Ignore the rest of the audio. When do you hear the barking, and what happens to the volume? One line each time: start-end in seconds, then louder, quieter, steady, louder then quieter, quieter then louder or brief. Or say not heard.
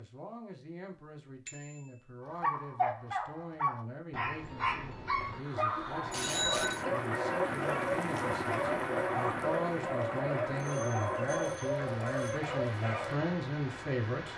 2.2-13.2 steady.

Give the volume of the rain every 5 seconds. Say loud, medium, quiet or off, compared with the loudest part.
off, loud, medium.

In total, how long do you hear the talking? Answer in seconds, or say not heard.
14 s.